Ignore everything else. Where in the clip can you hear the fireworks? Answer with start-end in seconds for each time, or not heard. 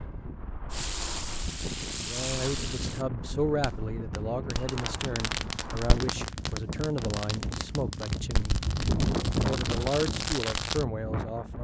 0.7-10.8.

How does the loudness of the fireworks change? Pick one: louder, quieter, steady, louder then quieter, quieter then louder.
quieter then louder.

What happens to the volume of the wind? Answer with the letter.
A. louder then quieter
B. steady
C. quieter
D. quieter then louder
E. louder
E.